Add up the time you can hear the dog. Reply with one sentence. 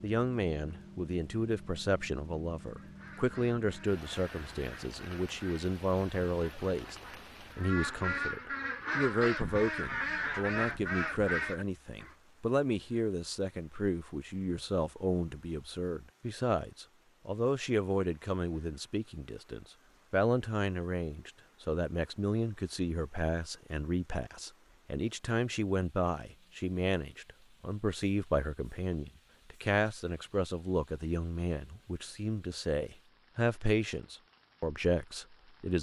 The dog can't be heard in this clip.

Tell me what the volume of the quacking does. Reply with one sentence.
The volume of the quacking goes up.